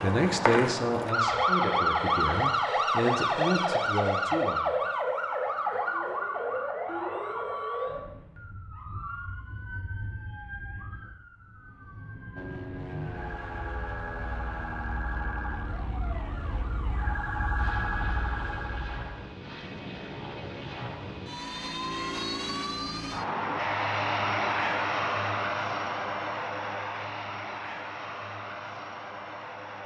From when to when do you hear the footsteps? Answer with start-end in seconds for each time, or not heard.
not heard.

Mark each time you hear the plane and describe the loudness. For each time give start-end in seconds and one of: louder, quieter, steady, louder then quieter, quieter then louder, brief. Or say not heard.
12.3-29.8 louder then quieter.